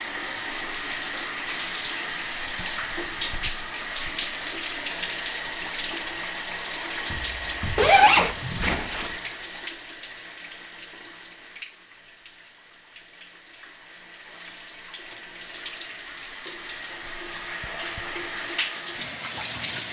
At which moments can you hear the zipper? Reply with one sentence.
The zipper can be heard from 7.8 to 9.2 s.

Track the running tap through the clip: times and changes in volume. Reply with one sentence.
You can hear the running tap from 0.0 to 19.8 s, getting quieter then louder.